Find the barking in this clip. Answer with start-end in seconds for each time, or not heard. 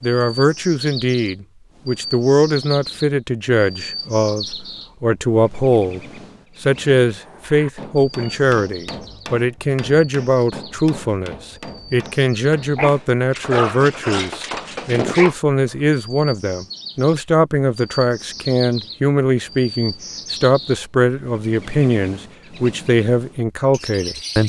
12.8-15.3.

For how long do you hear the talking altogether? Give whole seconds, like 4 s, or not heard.
24 s.